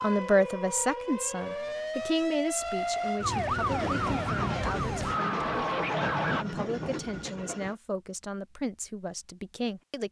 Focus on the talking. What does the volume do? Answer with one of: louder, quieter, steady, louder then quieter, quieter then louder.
quieter.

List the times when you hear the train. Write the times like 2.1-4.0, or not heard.
3.6-7.8.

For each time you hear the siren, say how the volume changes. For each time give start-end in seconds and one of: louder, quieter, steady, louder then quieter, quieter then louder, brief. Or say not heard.
0.0-6.5 louder.